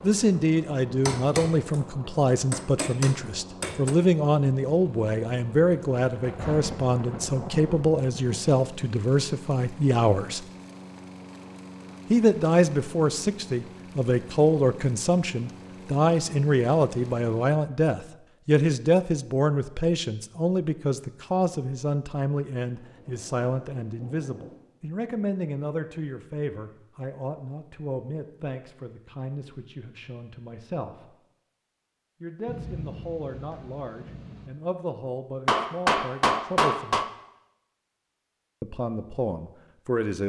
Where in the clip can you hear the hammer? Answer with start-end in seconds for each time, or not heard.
1.1-4.0, 35.5-37.1.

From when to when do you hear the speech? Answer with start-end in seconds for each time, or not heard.
0.0-10.4, 12.1-31.1, 32.2-37.0, 38.6-40.2.